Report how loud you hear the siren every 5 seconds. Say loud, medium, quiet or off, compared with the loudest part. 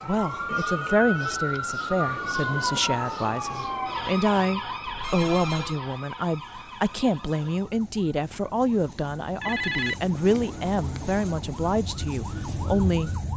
loud, medium, medium.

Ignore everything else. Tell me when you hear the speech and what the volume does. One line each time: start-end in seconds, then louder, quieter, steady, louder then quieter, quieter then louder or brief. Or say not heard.
0.0-13.1 steady.